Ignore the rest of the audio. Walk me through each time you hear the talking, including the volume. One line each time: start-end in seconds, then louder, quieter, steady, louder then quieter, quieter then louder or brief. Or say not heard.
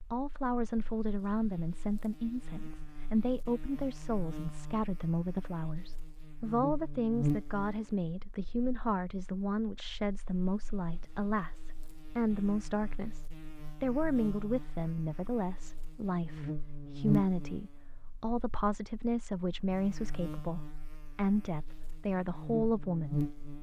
0.1-23.3 steady.